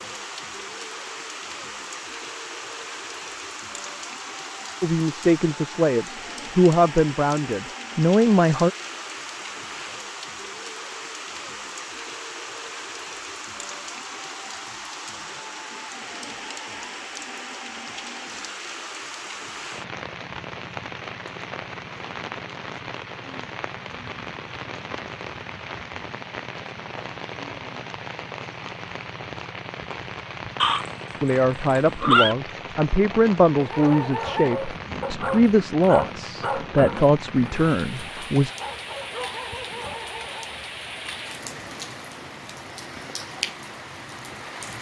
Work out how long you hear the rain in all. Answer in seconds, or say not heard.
45 s.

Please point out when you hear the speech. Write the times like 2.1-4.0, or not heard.
4.8-8.7, 31.2-38.5.